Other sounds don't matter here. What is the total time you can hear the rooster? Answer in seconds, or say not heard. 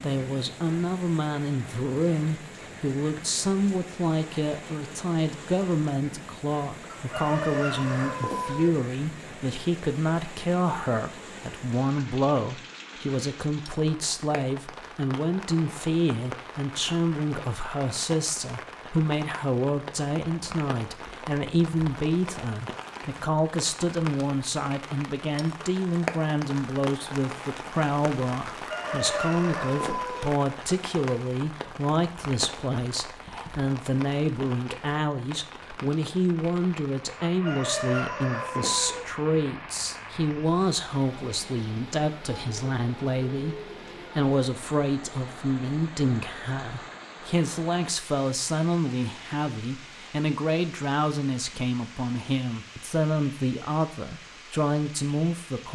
5 s.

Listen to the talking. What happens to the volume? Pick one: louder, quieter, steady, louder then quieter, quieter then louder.
steady.